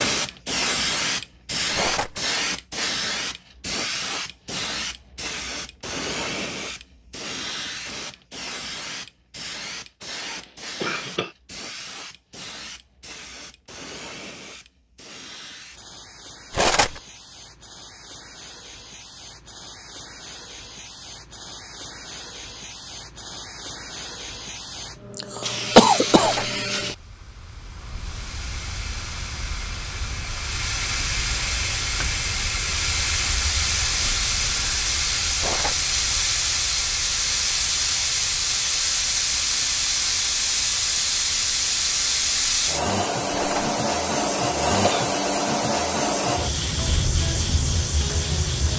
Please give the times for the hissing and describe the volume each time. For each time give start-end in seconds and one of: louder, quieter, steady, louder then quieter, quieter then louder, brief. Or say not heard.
0.0-48.7 quieter then louder.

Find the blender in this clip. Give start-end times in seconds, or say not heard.
not heard.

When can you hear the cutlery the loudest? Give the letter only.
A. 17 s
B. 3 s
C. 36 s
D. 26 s
A.